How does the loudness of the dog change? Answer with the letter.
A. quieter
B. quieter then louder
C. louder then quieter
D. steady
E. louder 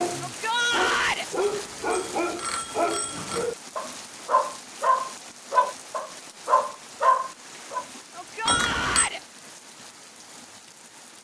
E.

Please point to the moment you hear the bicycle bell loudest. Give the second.
9 s.